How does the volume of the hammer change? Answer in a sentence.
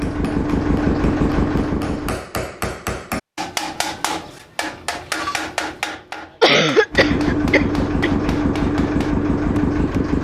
The loudness of the hammer goes up, then down.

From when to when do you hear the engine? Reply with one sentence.
The engine can be heard from 0.0 to 2.2 s and from 6.9 to 10.1 s.